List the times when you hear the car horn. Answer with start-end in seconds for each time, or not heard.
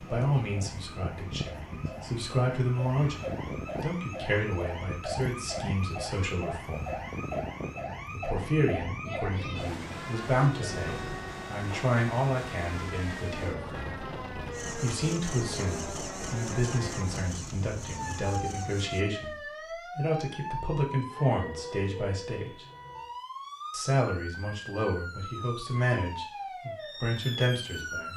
not heard.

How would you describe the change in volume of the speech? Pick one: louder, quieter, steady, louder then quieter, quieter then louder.
steady.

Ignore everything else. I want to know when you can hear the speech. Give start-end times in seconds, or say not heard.
0.0-7.0, 8.1-13.9, 14.8-22.6, 23.7-28.1.